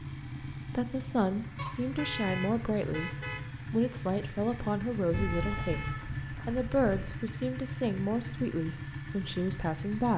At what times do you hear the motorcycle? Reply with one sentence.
The motorcycle can be heard from 0.0 to 10.1 s.